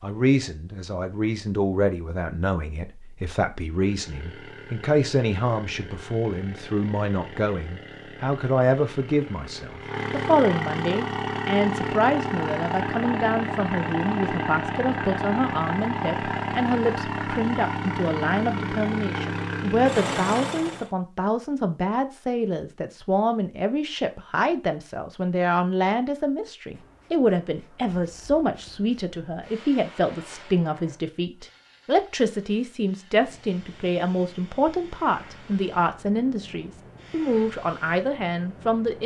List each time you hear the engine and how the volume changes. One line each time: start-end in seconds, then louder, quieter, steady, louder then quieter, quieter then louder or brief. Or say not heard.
3.8-20.9 louder.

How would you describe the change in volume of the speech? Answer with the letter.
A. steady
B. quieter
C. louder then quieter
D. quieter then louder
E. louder
A.